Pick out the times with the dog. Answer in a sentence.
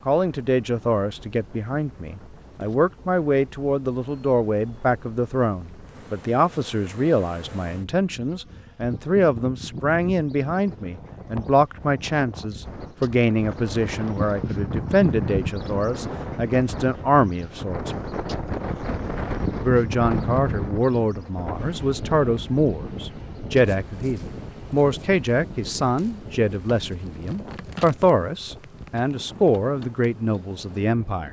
The dog can't be heard in this clip.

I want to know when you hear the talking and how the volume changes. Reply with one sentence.
You can hear the talking from 0.1 to 18.1 s, at a steady volume; and from 19.6 to 31.2 s, at a steady volume.